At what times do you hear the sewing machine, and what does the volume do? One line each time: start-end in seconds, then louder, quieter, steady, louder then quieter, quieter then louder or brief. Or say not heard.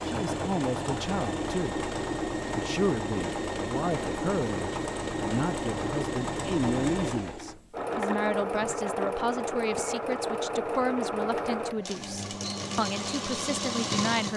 0.0-14.3 steady.